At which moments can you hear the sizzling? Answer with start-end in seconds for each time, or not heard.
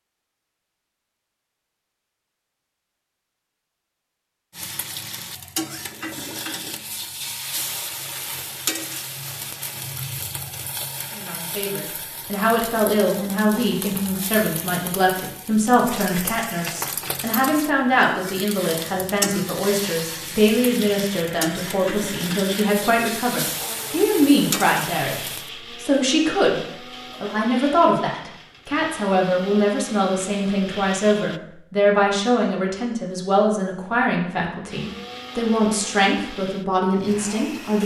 4.5-25.5.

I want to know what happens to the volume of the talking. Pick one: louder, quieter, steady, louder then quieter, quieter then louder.
steady.